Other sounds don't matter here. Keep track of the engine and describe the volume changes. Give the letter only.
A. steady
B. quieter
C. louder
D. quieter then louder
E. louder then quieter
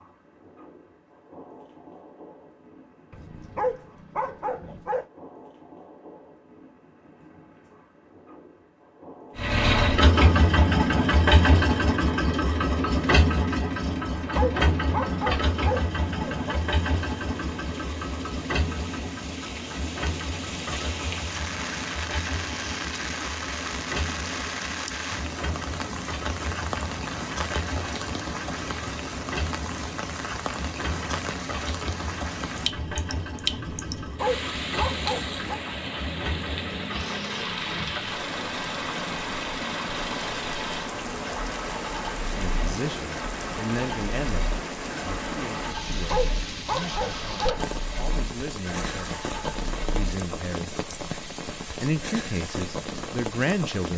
B.